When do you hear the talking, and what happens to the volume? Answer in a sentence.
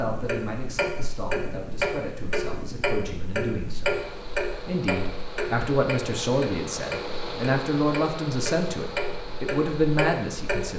You can hear the talking from 0.0 to 10.7 s, getting louder.